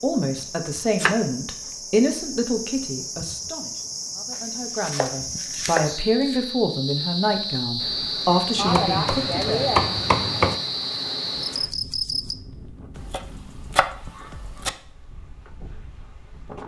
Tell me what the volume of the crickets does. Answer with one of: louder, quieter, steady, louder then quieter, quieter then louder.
louder.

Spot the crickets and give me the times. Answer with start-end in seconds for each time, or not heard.
0.0-12.3.